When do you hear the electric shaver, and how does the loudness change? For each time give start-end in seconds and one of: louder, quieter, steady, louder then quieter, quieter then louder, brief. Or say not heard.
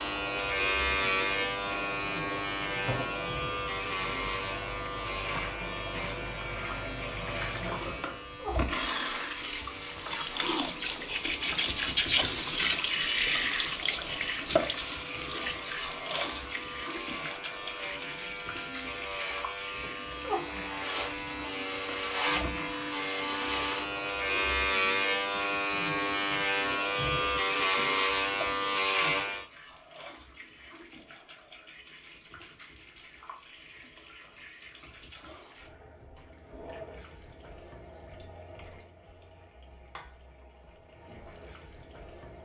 0.0-29.4 quieter then louder.